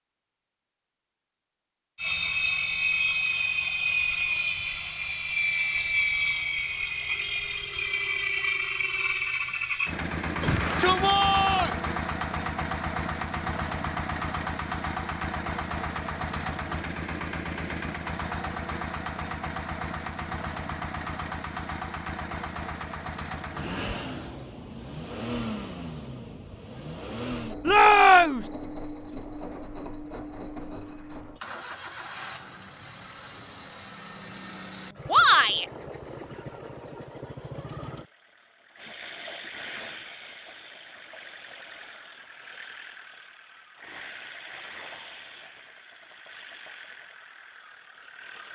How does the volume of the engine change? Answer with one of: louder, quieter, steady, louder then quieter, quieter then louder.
quieter.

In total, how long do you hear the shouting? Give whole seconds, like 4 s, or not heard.
3 s.